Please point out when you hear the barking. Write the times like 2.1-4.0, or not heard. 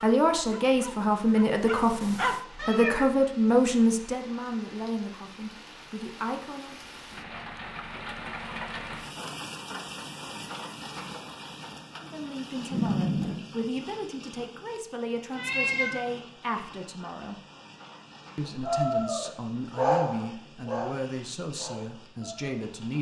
0.0-2.4, 18.6-22.7.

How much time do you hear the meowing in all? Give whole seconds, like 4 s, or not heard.
2 s.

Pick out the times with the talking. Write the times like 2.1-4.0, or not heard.
0.0-6.8, 11.9-17.4, 18.4-22.9.